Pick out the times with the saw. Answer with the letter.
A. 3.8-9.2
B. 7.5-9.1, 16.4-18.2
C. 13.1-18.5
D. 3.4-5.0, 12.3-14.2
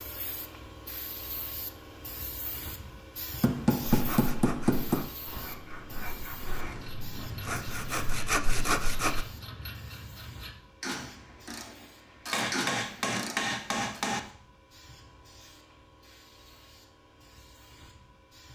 A.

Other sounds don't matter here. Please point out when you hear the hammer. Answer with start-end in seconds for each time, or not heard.
3.4-5.0, 12.3-14.2.